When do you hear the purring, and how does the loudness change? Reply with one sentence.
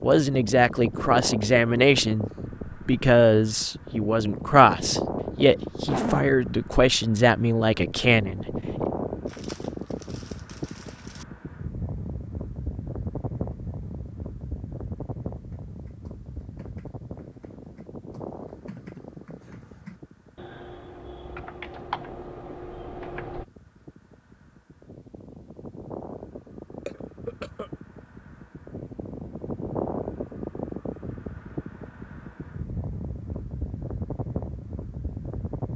The purring can't be heard in this clip.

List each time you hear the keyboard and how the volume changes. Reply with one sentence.
You can hear the keyboard from 15.5 to 23.4 s, getting louder.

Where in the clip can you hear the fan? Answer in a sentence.
You can hear the fan from 0.0 to 35.7 s.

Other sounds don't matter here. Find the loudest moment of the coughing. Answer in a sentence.
The volume of the coughing peaks at 6 seconds.